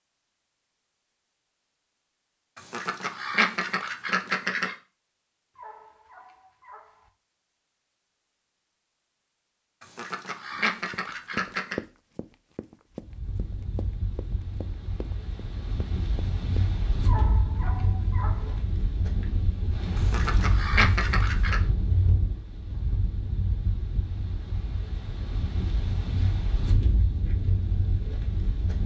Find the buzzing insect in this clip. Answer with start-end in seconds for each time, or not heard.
not heard.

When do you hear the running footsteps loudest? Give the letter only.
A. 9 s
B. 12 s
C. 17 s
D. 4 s
B.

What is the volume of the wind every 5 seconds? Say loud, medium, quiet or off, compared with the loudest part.
off, off, medium, loud, loud, loud.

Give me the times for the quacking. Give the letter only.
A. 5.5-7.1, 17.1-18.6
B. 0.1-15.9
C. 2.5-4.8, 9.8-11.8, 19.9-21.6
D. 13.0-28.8
C.